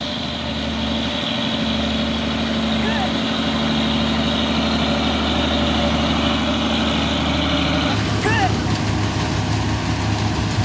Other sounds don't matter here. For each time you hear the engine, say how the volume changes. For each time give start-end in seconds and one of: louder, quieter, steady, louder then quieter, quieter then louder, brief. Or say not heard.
0.0-10.6 steady.